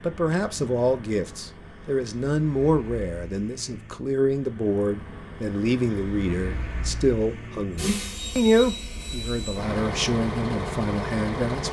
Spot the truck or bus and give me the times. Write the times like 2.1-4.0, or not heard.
0.0-11.6.